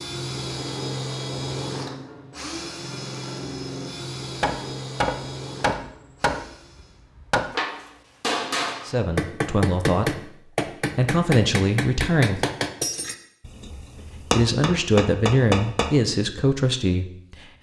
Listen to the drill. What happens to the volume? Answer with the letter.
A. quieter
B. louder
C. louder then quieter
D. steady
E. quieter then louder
A.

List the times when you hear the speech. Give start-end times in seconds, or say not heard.
8.8-10.3, 10.9-12.5, 14.3-17.5.